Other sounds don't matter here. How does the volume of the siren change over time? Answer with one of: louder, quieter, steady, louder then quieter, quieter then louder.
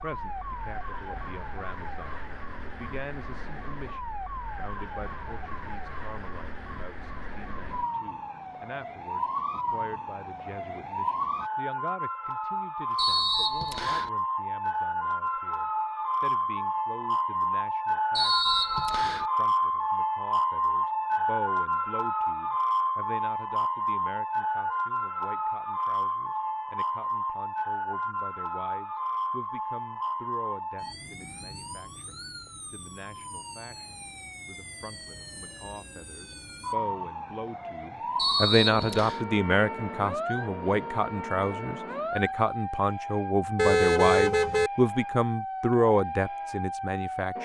louder then quieter.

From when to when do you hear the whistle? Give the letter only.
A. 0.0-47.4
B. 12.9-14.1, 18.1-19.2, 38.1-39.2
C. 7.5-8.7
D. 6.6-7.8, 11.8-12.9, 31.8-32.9
B.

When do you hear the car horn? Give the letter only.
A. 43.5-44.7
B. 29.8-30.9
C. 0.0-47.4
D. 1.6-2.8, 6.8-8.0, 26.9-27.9
A.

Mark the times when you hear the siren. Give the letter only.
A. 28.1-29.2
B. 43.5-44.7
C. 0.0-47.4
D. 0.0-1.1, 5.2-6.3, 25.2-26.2
C.